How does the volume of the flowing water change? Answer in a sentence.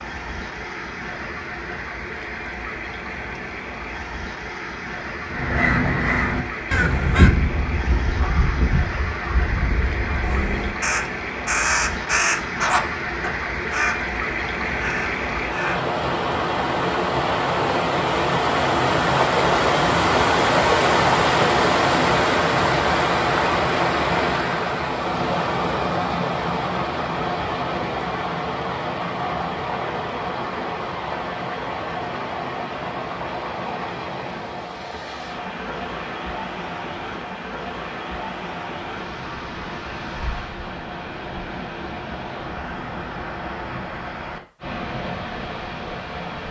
The volume of the flowing water goes up, then down.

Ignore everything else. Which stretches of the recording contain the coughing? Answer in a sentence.
The coughing can't be heard in this clip.